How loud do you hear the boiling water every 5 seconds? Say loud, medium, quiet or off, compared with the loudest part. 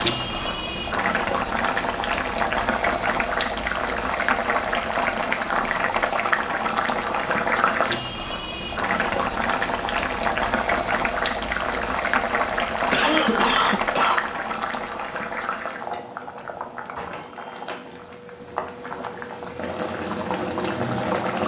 loud, loud, loud, medium, loud.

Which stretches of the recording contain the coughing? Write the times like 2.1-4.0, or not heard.
12.9-14.2.